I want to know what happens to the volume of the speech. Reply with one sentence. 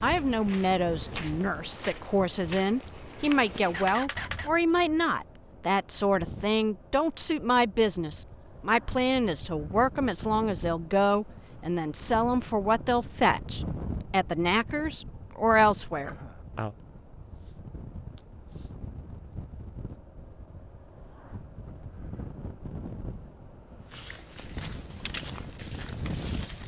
The loudness of the speech stays about the same.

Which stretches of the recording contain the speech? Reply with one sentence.
You can hear the speech from 0.0 to 16.8 s.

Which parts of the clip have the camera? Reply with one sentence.
The camera can be heard from 3.7 to 4.5 s.